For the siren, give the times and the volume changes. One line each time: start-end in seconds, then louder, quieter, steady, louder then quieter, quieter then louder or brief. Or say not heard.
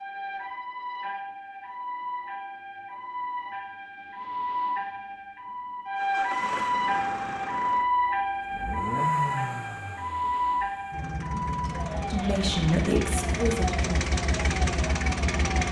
0.0-15.6 louder then quieter.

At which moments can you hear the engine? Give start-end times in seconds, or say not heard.
6.0-15.6.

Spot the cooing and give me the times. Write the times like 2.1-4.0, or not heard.
not heard.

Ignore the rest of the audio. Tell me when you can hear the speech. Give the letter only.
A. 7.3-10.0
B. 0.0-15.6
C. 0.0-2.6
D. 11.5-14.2
D.